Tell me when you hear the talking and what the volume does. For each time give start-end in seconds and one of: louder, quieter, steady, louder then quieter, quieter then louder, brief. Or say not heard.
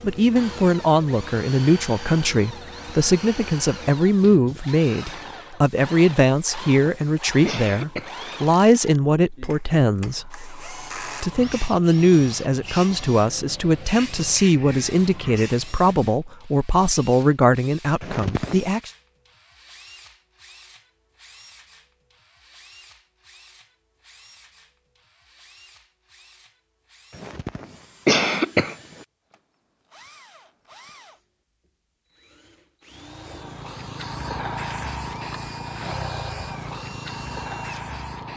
0.0-18.9 steady.